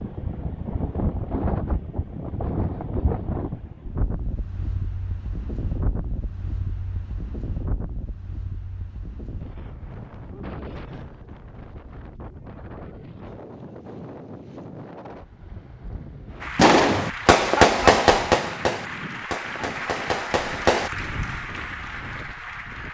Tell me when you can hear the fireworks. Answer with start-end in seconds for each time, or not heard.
16.6-21.4.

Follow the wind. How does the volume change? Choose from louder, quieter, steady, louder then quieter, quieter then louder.
quieter.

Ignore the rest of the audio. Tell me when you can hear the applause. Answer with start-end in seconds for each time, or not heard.
16.4-22.8.